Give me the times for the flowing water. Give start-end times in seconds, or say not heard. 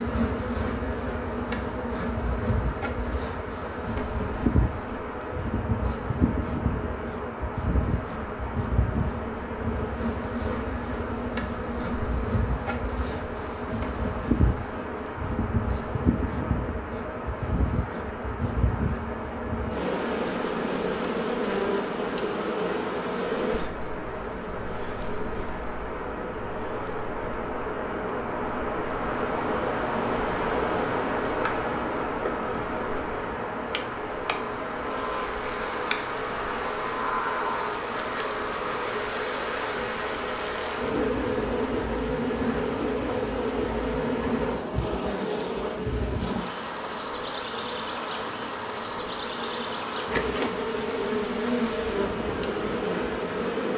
0.0-53.7.